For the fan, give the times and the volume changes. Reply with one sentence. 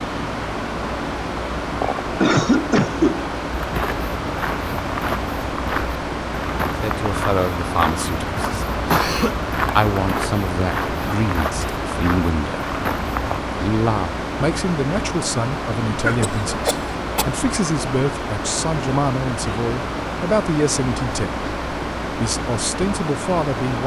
You can hear the fan from 0.0 to 23.8 s, at a steady volume.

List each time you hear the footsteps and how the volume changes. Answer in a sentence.
You can hear the footsteps from 3.5 to 13.4 s, at a steady volume.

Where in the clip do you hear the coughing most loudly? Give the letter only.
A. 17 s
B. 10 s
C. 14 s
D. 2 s
D.